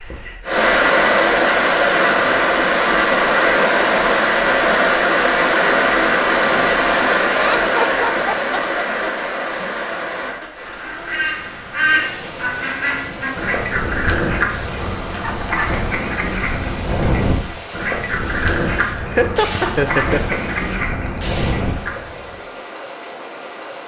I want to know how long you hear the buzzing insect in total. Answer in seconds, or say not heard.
not heard.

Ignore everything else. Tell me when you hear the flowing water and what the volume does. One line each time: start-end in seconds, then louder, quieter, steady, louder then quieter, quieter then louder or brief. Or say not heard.
0.0-23.8 quieter.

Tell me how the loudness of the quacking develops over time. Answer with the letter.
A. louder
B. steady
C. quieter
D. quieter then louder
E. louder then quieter
B.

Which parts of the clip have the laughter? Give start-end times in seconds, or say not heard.
7.3-9.1, 19.0-20.4.